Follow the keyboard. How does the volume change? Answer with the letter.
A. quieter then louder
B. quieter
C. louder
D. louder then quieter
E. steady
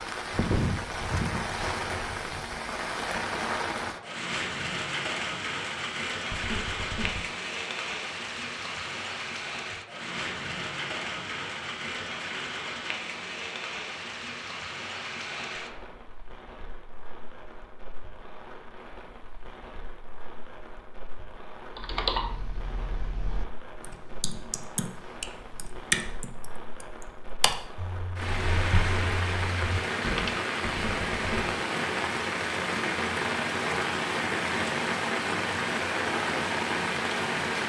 D.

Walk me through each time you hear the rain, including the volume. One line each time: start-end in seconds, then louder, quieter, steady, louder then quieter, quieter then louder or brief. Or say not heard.
0.0-37.6 quieter then louder.